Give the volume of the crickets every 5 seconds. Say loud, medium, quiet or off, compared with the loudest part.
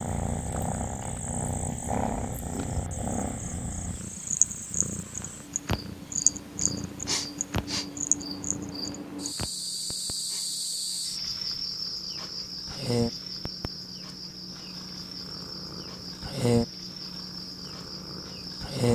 medium, loud, loud, medium.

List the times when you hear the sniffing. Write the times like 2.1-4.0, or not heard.
6.6-7.8, 9.8-11.1.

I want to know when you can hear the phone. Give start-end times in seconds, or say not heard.
not heard.